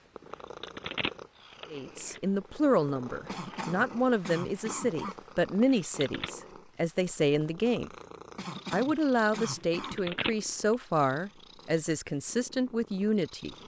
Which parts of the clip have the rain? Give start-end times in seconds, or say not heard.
not heard.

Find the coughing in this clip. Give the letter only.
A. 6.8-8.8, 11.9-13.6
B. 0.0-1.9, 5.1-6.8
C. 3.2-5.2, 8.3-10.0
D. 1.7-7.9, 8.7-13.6
C.